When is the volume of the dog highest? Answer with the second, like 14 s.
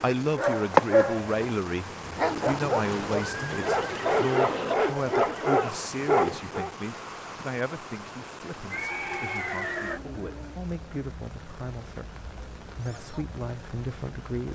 1 s.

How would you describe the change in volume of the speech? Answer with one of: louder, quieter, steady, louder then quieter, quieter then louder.
quieter.